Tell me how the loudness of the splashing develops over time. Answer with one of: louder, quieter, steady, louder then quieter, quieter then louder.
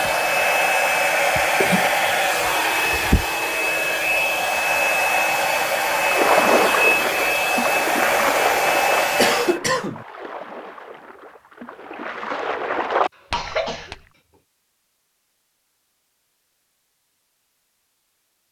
quieter then louder.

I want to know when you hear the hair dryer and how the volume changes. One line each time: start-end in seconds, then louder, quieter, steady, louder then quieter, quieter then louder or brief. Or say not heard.
0.0-9.6 steady.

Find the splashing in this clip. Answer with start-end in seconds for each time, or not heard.
5.9-14.0.